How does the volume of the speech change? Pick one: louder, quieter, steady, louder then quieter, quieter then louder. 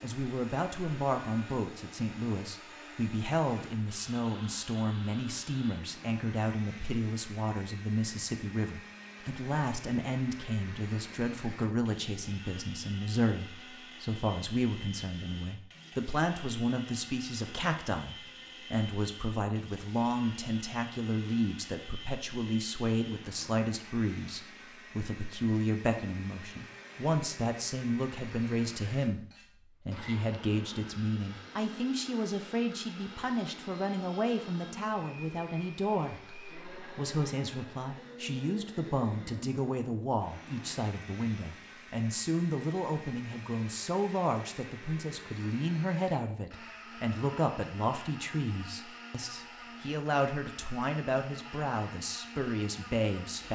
steady.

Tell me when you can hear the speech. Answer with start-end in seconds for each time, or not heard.
0.0-29.2, 29.9-53.4.